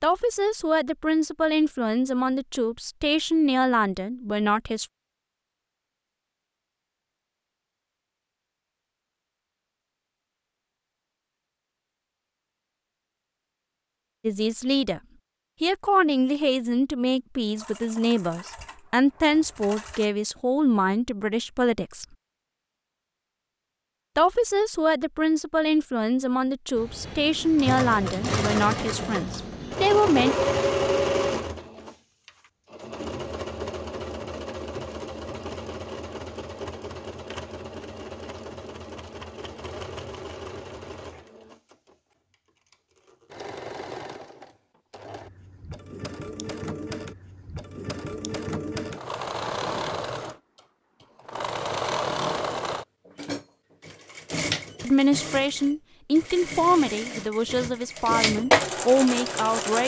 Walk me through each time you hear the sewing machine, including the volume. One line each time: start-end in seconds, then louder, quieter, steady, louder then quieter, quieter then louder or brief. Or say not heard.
17.6-20.1 brief
26.8-50.4 quieter then louder
51.2-59.8 quieter then louder.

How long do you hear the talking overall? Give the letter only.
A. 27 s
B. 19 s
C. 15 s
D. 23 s
D.